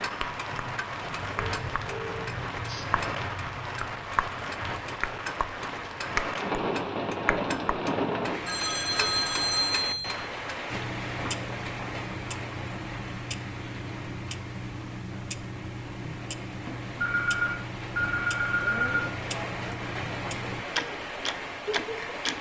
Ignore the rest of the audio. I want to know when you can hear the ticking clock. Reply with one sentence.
You can hear the ticking clock from 0.0 to 22.3 s.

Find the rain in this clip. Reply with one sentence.
You can hear the rain from 0.0 to 22.3 s.